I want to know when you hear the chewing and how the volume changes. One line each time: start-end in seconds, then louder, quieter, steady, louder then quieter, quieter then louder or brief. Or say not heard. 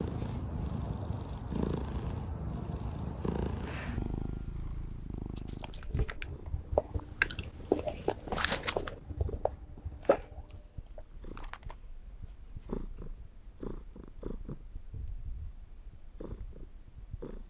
5.3-11.8 louder then quieter.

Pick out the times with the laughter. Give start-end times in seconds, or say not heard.
not heard.